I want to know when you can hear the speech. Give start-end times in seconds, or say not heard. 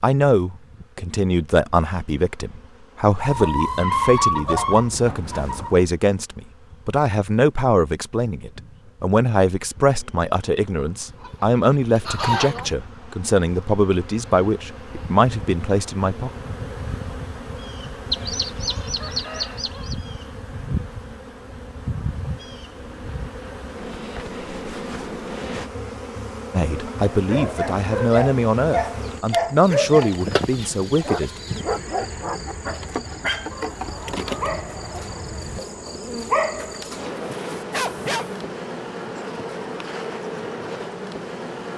0.0-16.3, 26.5-31.3.